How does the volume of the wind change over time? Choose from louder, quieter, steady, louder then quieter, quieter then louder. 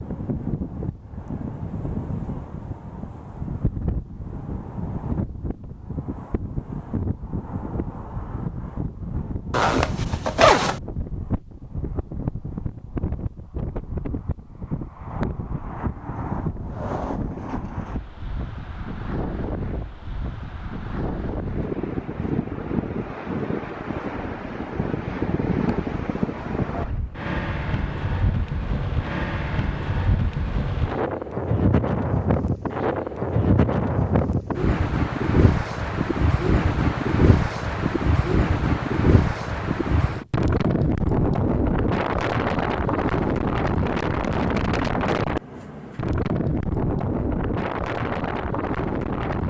louder.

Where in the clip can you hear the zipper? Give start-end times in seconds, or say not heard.
9.5-10.8.